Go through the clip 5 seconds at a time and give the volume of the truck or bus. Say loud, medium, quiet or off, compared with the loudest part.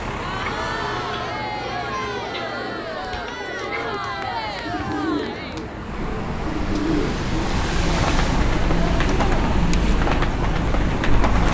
medium, loud, loud.